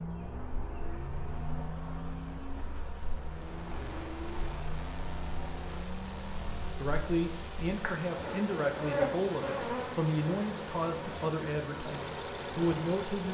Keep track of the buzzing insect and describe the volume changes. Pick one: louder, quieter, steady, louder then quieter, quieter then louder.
louder then quieter.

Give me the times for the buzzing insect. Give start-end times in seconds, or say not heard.
0.0-13.3.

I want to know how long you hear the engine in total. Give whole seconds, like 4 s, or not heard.
13 s.